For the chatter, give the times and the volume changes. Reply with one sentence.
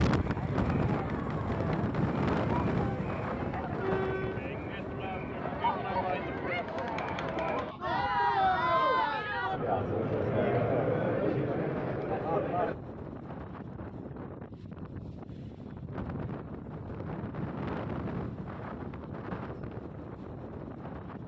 The chatter can be heard from 0.0 to 12.8 s, getting louder.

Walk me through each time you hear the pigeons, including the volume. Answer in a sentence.
You can't hear the pigeons here.